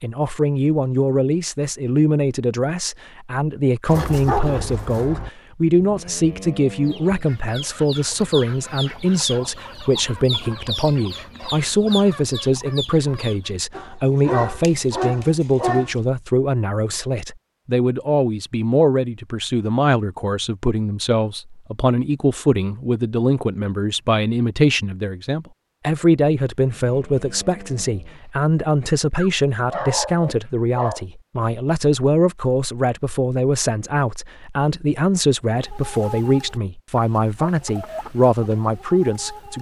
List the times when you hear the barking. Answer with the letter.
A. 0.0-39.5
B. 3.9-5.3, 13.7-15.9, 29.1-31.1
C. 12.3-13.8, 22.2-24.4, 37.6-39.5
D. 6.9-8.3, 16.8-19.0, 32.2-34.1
B.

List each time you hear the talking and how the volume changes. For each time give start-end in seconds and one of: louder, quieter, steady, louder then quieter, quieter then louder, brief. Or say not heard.
0.0-39.5 steady.